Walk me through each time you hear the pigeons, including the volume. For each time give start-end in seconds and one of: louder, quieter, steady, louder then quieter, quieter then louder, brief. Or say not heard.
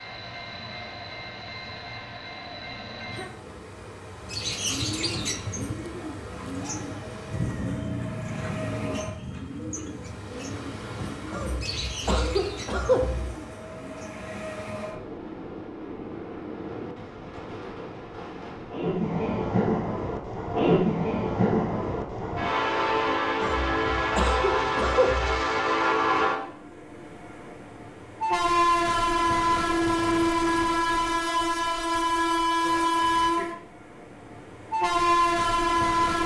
4.2-14.2 quieter.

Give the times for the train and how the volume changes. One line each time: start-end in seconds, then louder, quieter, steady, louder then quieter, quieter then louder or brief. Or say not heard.
0.0-36.2 louder.